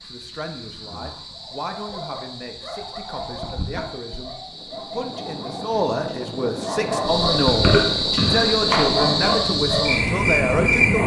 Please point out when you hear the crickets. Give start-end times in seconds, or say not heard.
0.0-11.0.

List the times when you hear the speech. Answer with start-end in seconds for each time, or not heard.
0.1-11.0.